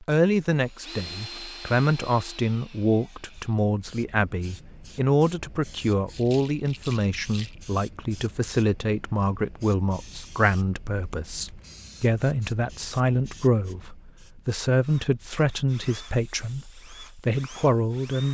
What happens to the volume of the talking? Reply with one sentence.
The volume of the talking stays about the same.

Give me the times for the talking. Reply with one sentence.
You can hear the talking from 0.0 to 18.2 s.